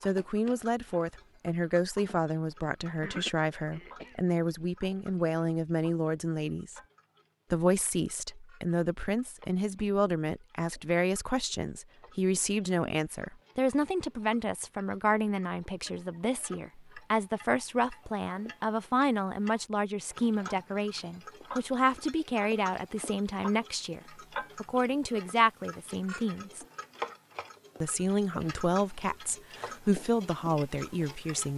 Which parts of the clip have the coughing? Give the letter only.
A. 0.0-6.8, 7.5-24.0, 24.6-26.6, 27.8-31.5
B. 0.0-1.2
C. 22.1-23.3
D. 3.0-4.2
D.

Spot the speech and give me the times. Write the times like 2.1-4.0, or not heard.
0.0-6.8, 7.5-24.0, 24.6-26.6, 27.8-31.5.